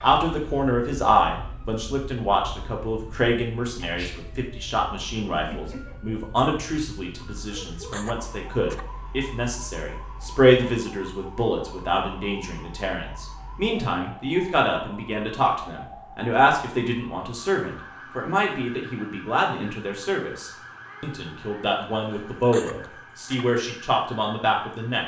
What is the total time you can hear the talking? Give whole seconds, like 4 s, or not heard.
25 s.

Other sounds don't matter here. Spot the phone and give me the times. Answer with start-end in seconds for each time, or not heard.
not heard.